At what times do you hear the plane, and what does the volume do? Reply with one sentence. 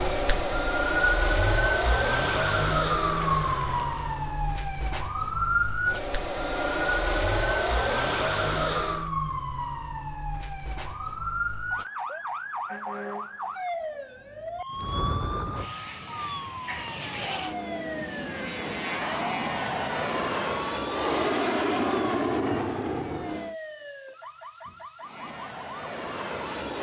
The plane can be heard from 0.0 to 9.1 s, getting quieter then louder; from 14.8 to 23.6 s, getting louder; and briefly from 25.0 to 26.7 s.